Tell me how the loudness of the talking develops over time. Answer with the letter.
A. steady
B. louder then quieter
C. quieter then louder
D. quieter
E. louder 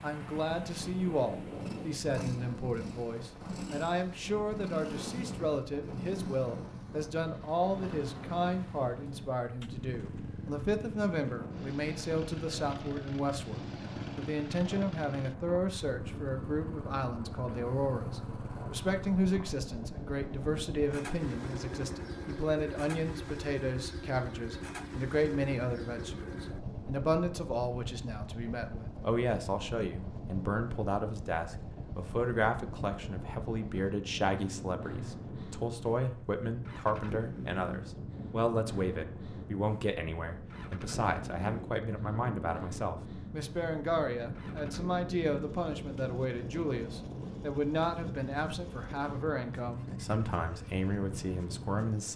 A.